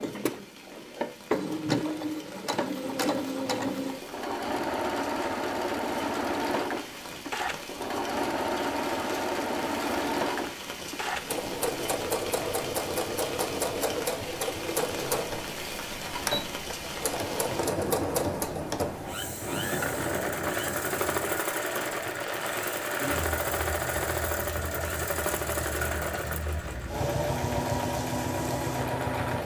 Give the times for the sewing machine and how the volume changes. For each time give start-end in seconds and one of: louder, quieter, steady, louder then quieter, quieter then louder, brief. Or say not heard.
0.0-29.4 steady.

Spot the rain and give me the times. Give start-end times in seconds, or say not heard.
0.0-29.4.